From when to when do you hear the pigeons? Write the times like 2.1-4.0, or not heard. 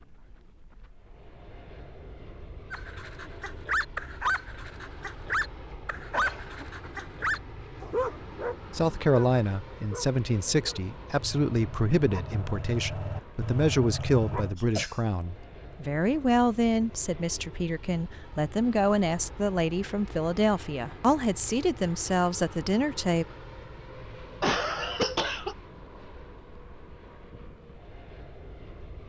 not heard.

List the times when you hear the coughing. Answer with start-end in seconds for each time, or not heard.
5.7-7.2, 14.0-15.0, 24.4-25.6.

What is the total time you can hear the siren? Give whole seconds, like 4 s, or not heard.
not heard.